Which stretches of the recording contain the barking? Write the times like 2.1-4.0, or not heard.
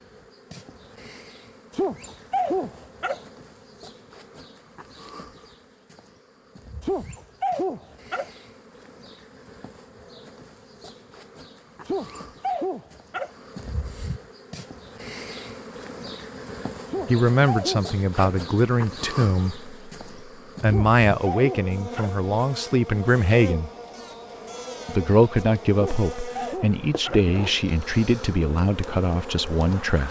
1.7-3.2, 6.8-8.3, 11.8-13.3, 16.9-18.4, 20.6-22.1, 25.8-27.2.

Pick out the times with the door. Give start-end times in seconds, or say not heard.
not heard.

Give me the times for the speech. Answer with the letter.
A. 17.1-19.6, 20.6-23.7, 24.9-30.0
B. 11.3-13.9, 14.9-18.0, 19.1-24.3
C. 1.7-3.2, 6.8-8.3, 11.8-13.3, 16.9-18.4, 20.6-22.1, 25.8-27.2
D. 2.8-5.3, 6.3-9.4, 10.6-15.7
A.